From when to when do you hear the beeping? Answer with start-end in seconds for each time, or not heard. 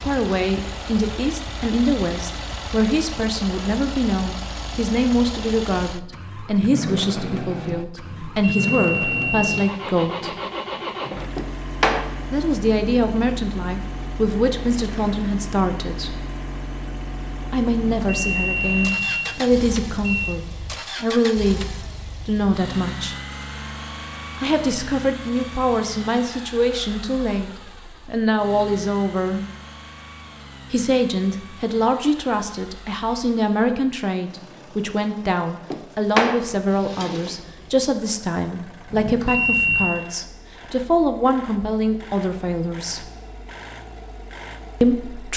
8.1-10.3, 17.8-20.4, 38.9-40.0.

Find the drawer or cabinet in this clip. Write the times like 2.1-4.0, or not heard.
11.3-12.1, 35.7-37.4.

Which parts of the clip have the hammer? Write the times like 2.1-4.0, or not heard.
not heard.